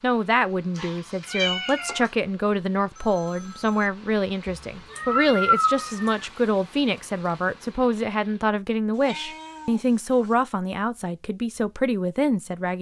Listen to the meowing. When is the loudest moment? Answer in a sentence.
The loudest moment of the meowing is at 6 seconds.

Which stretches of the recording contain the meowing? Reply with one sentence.
The meowing can be heard from 0.8 to 2.1 s, from 4.5 to 6.2 s and from 8.9 to 10.3 s.